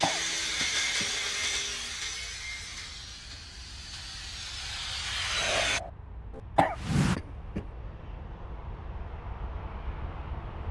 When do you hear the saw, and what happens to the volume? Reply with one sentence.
The saw can be heard from 0.0 to 7.2 s, getting quieter then louder.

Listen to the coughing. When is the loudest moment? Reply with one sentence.
The volume of the coughing peaks at 7 seconds.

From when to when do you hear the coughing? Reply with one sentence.
The coughing can be heard from 0.0 to 1.1 s and from 6.5 to 7.7 s.